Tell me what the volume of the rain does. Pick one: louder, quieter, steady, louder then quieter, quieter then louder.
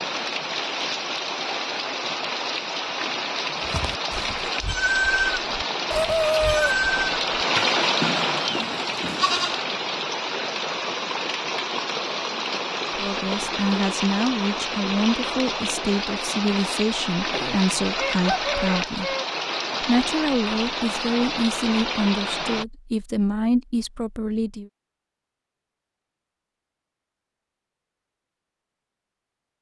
steady.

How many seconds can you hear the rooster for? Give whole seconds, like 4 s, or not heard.
3 s.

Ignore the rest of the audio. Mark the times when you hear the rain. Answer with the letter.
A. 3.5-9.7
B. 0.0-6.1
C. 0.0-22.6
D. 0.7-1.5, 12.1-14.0
C.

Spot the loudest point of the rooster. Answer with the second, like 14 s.
6 s.